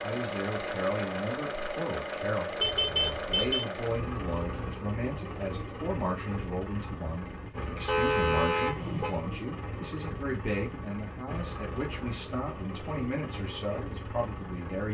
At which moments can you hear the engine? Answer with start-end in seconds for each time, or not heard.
0.0-14.9.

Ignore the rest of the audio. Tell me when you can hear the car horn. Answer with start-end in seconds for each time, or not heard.
2.6-3.6, 7.8-9.1.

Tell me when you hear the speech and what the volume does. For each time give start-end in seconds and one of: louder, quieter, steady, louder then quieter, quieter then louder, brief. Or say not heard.
0.0-14.9 steady.